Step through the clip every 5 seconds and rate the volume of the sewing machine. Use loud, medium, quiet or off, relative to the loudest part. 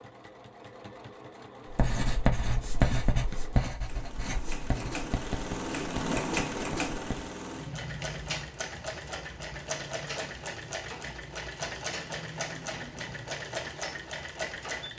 medium, loud, loud.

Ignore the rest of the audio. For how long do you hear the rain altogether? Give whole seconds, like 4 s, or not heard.
not heard.